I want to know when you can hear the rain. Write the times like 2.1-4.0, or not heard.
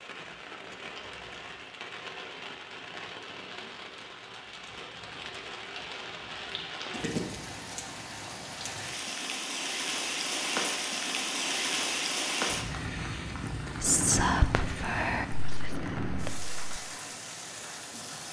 0.0-18.2.